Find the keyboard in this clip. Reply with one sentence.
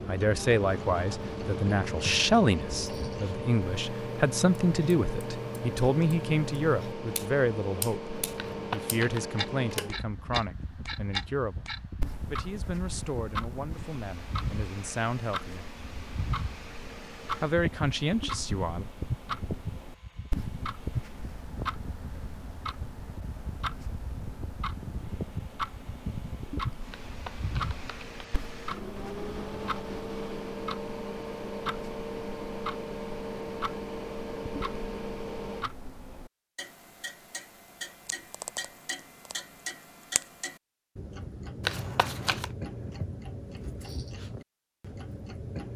You can't hear the keyboard here.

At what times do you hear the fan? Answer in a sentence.
You can hear the fan from 0.0 to 35.7 s.